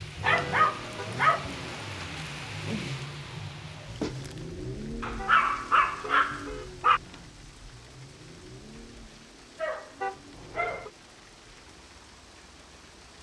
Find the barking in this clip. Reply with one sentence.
The barking can be heard from 0.2 to 2.5 s, from 5.0 to 7.0 s and from 9.6 to 10.9 s.